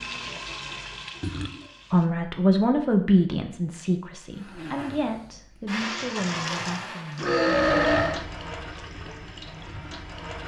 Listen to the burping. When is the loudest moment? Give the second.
8 s.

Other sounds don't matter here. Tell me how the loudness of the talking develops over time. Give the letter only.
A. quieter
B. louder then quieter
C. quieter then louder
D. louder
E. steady
A.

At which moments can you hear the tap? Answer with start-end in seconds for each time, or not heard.
0.0-2.1, 5.7-10.4.